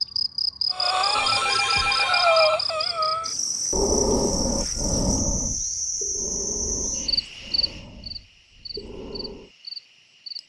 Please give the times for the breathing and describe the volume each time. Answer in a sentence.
You can hear the breathing from 0.7 to 9.5 s, getting quieter.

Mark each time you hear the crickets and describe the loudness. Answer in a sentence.
You can hear the crickets from 0.0 to 10.4 s, getting quieter.